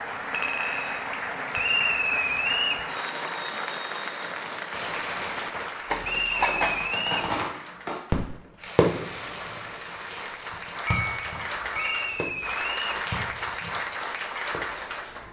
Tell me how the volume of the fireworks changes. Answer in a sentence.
The loudness of the fireworks goes up, then down.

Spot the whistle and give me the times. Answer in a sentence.
You can hear the whistle from 1.6 to 2.9 s, from 6.0 to 7.3 s and from 11.8 to 13.1 s.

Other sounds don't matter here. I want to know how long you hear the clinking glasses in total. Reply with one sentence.
You can hear the clinking glasses for 4 seconds altogether.